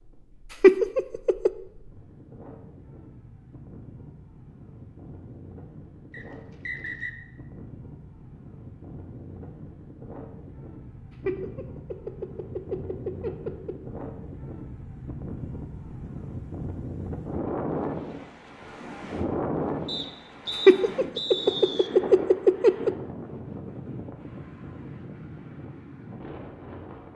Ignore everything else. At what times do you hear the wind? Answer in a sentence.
The wind can be heard from 0.0 to 27.1 s.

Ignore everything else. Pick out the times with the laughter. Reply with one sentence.
You can hear the laughter from 0.6 to 1.5 s, from 11.2 to 13.8 s and from 20.6 to 22.9 s.